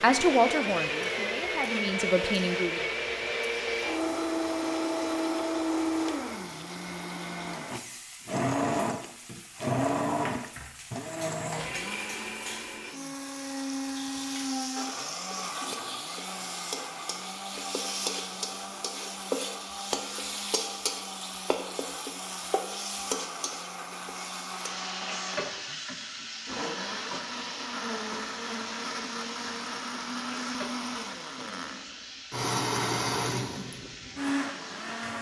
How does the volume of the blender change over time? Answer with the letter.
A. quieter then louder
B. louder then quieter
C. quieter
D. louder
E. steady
A.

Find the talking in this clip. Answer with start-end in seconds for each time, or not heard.
0.0-2.8.